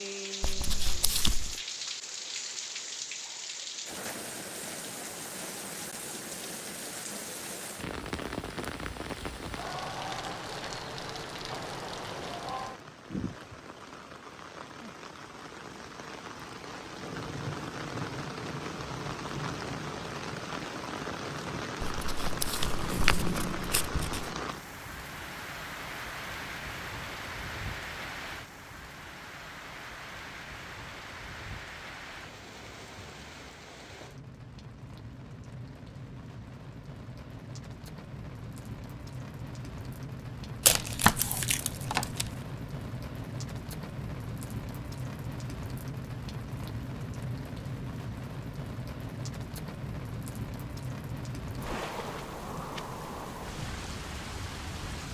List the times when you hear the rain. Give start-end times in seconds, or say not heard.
0.0-55.0.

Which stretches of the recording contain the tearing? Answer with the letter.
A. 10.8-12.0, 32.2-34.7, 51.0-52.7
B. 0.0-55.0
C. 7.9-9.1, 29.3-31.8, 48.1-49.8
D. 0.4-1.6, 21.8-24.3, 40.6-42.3
D.